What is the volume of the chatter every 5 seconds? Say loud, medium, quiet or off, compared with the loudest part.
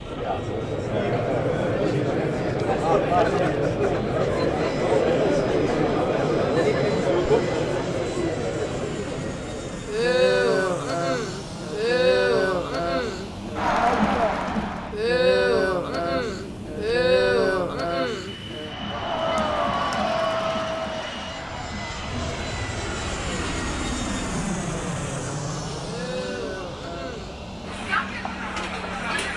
loud, loud, loud, loud, medium, medium.